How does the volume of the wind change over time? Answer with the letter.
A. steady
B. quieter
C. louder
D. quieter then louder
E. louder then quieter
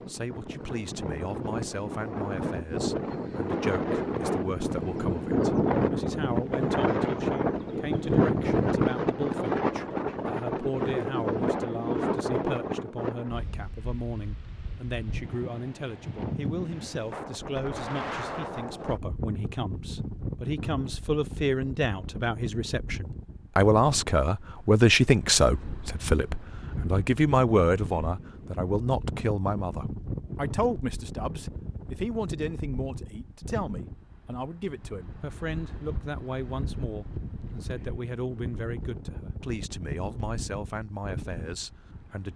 B.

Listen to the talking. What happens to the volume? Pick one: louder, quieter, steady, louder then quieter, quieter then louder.
louder then quieter.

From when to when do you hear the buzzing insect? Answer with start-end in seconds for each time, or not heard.
not heard.